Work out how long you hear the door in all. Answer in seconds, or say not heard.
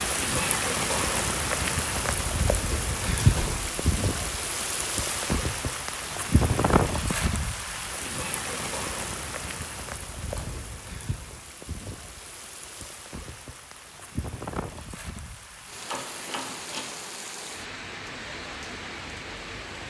2 s.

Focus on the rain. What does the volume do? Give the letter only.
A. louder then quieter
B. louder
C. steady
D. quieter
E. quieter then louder
D.